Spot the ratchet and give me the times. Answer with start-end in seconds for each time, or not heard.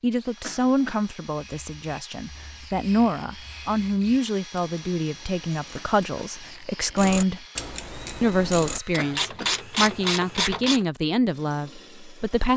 1.4-10.8.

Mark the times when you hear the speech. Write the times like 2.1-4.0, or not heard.
0.0-7.5, 8.2-12.5.